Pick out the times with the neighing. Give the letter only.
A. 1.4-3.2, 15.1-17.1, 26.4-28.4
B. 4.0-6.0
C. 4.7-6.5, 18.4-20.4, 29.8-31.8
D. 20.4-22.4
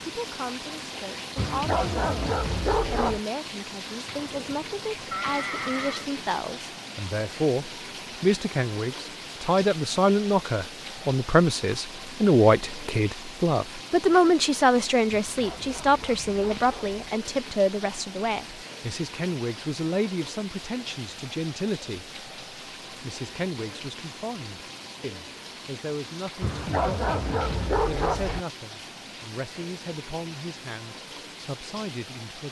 B.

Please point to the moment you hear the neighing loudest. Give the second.
5 s.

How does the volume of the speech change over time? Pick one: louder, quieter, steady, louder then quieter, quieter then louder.
louder then quieter.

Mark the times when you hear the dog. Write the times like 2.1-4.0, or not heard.
1.4-3.2, 15.1-17.1, 26.4-28.4.